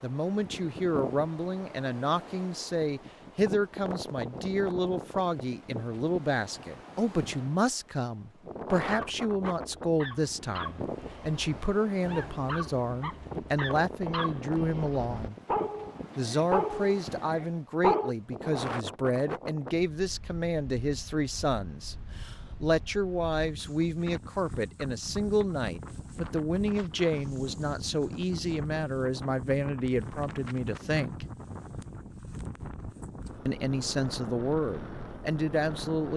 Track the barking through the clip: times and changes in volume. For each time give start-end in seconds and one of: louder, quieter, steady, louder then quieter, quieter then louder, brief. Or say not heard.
8.8-18.1 louder.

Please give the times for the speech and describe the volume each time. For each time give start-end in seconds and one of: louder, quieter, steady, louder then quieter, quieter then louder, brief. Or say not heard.
0.0-15.3 steady
16.1-31.2 steady
33.5-36.1 brief.